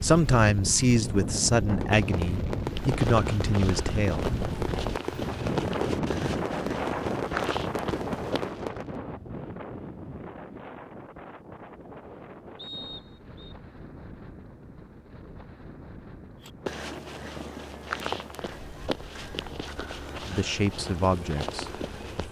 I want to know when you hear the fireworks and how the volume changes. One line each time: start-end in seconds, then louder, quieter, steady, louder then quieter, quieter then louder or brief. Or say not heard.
1.6-9.0 steady.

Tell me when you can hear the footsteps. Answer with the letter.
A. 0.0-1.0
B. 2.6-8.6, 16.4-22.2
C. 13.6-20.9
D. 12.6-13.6
B.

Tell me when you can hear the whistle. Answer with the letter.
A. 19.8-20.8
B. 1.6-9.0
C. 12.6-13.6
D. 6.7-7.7
C.